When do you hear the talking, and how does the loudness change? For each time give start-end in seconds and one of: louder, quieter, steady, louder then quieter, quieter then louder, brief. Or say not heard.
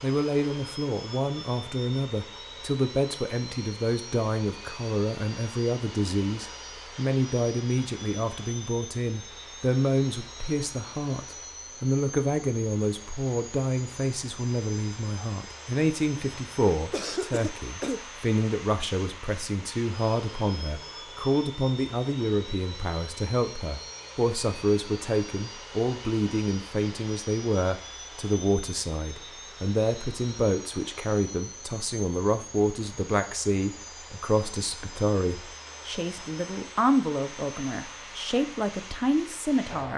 0.0-39.9 steady.